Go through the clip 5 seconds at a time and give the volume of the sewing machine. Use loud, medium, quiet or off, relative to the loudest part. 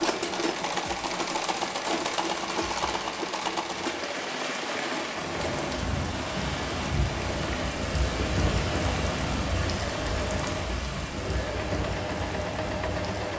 loud, medium, loud.